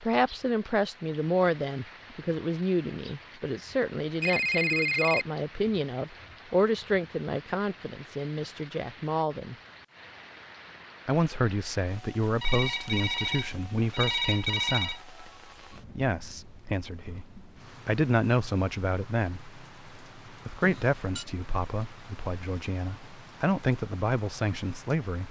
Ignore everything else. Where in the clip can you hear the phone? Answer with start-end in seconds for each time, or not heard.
4.2-5.2, 12.4-15.0, 20.6-21.2.